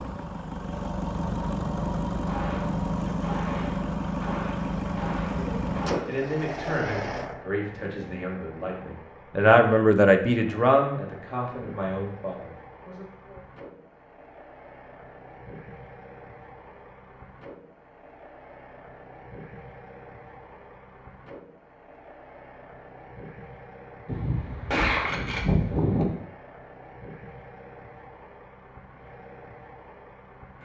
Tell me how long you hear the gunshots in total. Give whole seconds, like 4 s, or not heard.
6 s.